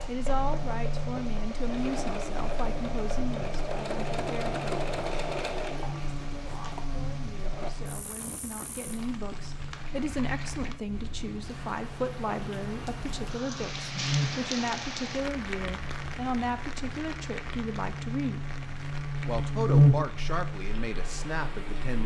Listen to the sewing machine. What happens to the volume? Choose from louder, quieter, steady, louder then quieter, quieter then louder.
louder then quieter.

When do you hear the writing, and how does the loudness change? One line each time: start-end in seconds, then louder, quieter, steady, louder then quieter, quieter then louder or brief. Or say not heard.
not heard.